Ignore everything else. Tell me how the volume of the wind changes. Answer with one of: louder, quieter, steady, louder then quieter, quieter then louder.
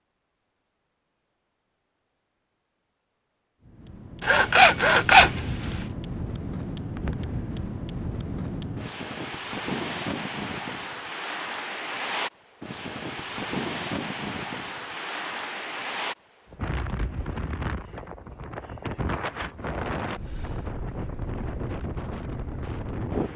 steady.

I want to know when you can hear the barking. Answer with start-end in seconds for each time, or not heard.
not heard.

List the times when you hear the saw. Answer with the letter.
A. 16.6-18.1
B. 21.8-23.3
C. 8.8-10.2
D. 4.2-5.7
D.